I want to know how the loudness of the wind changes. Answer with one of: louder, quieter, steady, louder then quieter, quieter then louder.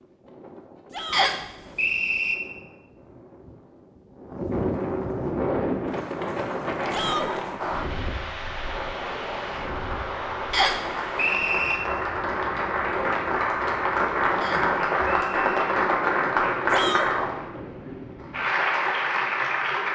louder then quieter.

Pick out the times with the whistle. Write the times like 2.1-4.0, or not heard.
1.1-2.4, 10.5-11.8, 14.4-15.4.